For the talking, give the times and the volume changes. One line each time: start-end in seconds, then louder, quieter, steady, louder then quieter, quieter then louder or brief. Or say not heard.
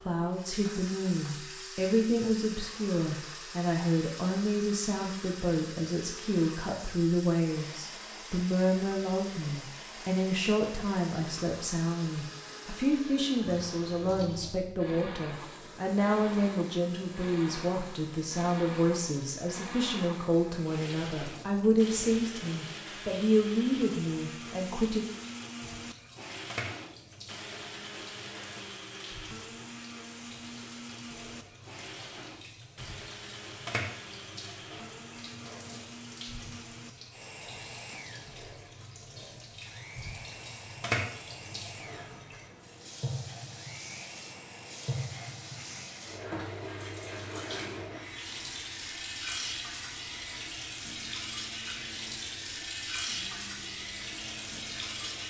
0.1-25.1 steady.